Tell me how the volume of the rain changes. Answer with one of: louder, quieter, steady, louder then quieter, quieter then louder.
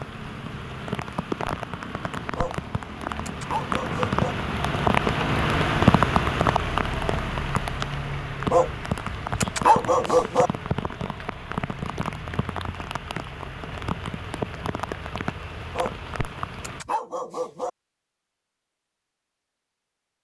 louder then quieter.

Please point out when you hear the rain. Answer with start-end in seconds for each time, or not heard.
0.0-16.9.